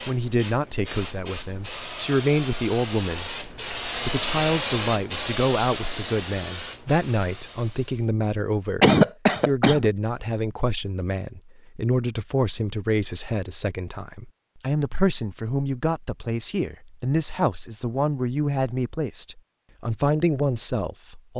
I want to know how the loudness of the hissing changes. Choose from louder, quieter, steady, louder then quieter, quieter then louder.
louder then quieter.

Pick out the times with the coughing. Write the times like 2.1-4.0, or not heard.
8.8-9.9.